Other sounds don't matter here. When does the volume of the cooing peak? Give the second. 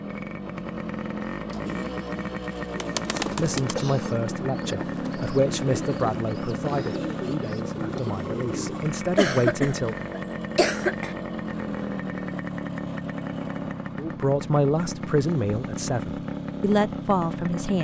3 s.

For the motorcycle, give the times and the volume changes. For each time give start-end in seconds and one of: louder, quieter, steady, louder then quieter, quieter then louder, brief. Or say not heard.
0.0-17.7 steady.